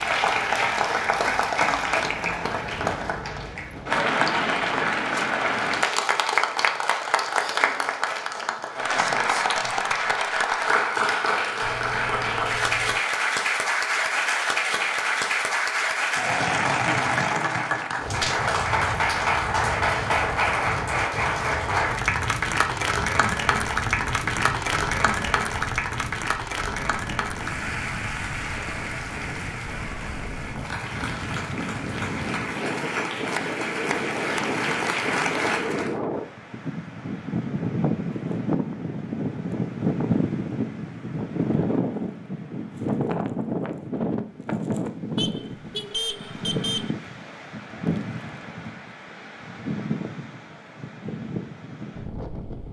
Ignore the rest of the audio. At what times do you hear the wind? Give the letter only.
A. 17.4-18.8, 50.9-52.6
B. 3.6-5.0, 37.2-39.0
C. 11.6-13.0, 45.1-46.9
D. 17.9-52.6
D.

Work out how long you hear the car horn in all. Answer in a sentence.
You can hear the car horn for 3 seconds altogether.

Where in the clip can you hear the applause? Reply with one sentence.
The applause can be heard from 0.0 to 36.0 s.